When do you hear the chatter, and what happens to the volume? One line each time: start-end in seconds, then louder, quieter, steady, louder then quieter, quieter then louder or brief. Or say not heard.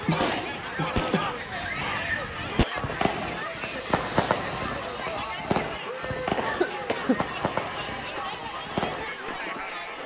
0.0-10.0 steady.